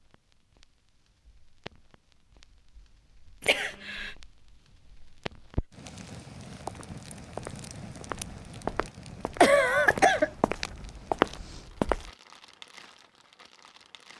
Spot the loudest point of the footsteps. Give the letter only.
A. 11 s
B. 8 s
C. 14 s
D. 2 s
A.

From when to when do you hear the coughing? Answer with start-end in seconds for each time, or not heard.
3.4-4.1, 9.4-10.3.